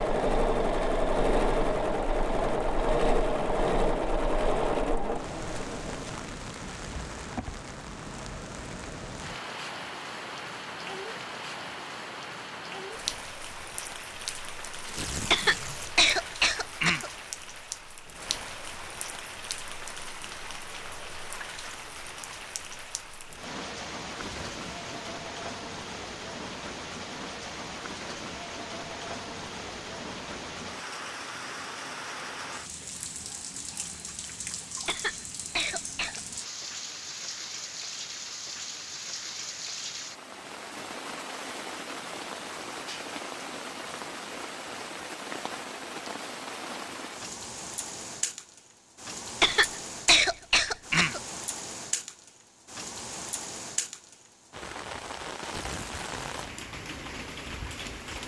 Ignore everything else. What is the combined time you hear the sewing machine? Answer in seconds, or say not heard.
6 s.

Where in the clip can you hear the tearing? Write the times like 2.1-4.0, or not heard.
14.8-15.9, 24.2-24.9, 55.4-56.5.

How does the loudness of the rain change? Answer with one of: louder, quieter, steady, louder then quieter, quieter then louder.
steady.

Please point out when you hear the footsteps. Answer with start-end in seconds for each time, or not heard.
not heard.